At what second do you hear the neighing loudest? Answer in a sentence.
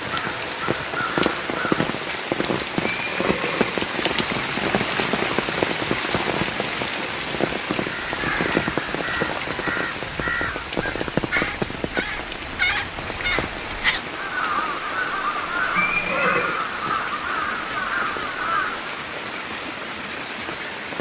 The volume of the neighing peaks at 16 seconds.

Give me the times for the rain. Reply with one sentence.
The rain can be heard from 0.0 to 20.9 s.